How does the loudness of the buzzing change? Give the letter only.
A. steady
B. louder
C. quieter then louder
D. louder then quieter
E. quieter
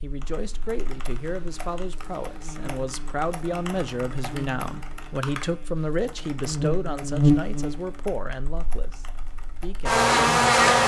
B.